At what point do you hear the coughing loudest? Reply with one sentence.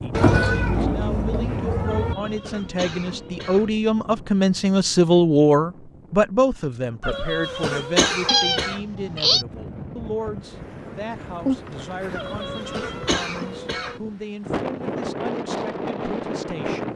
The loudest moment of the coughing is at 8 seconds.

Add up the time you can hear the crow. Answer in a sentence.
The crow can't be heard in this clip.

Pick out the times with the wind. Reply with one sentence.
You can hear the wind from 0.0 to 16.9 s.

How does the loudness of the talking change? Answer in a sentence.
The loudness of the talking goes up, then down.